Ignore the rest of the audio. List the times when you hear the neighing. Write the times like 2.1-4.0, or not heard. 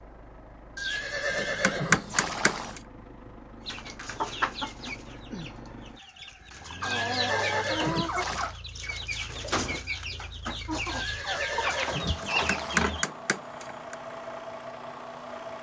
0.8-2.8, 6.8-8.6, 10.9-12.8.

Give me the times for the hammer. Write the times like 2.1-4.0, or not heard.
1.3-2.8, 12.2-13.9.